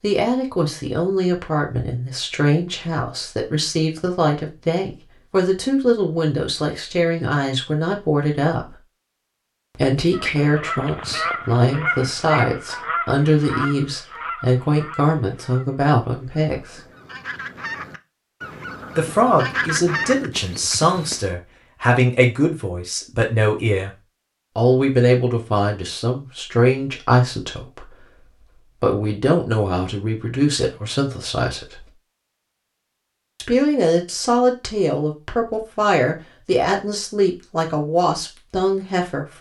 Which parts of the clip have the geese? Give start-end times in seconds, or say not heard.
10.1-21.2.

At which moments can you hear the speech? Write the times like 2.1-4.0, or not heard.
0.0-8.8, 9.8-16.8, 18.9-23.9, 24.6-31.9, 33.4-39.3.